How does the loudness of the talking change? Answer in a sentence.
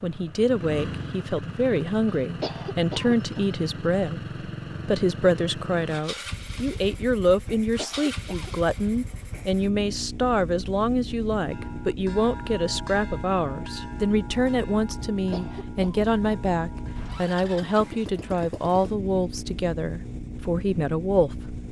The loudness of the talking stays about the same.